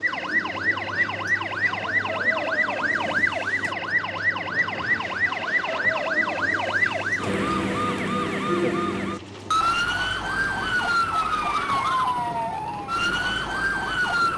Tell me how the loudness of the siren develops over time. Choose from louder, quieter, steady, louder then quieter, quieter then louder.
steady.